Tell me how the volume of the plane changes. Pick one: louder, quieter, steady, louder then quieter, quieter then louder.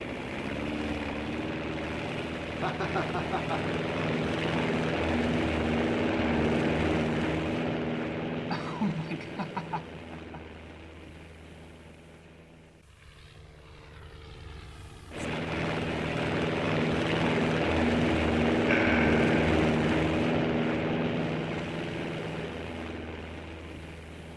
quieter then louder.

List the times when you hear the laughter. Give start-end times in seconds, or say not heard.
2.6-3.6, 8.5-10.4, 18.6-19.2.